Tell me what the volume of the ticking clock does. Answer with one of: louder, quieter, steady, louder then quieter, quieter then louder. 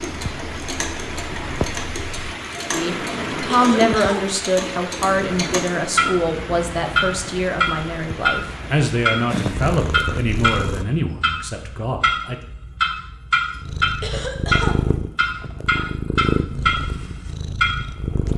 louder.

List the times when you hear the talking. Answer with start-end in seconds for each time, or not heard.
2.6-12.4.